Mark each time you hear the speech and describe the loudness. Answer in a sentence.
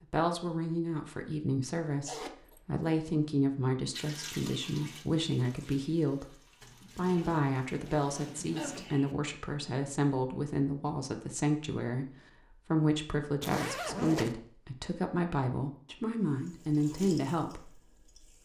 The speech can be heard from 0.1 to 18.4 s, at a steady volume.